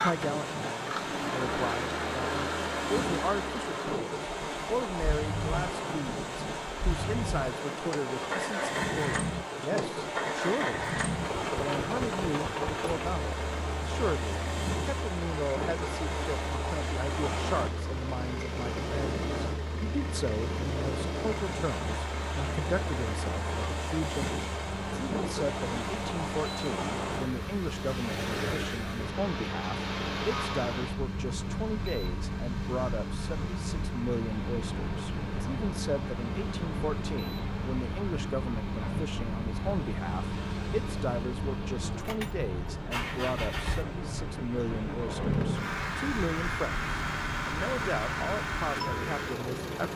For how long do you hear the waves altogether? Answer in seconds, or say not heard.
50 s.